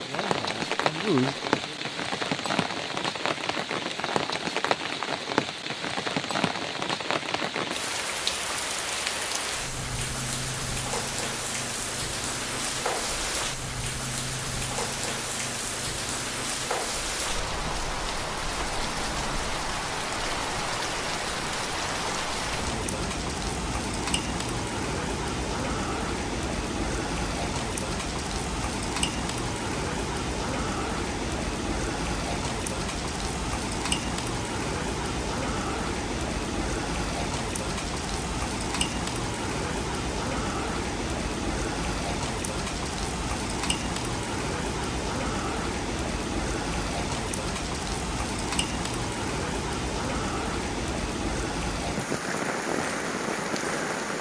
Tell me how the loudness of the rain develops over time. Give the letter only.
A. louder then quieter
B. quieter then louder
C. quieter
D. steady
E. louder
D.